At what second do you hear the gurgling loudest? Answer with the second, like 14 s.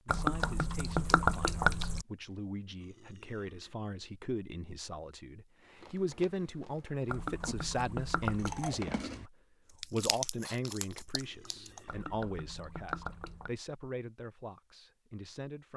1 s.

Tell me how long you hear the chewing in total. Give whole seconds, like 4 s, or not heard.
6 s.